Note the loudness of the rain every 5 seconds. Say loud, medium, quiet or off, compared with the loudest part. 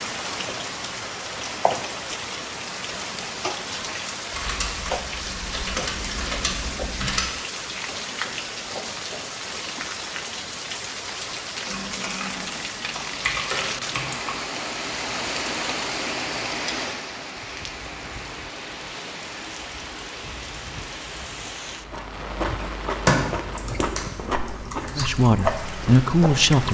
loud, loud, loud, loud, medium, medium.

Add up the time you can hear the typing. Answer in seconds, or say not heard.
8 s.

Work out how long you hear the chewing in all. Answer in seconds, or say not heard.
5 s.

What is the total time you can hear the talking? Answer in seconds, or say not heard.
2 s.